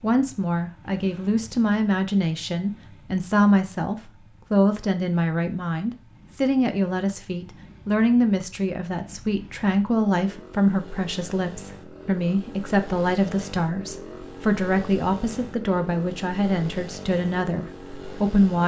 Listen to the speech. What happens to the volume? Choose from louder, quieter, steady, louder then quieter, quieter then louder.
steady.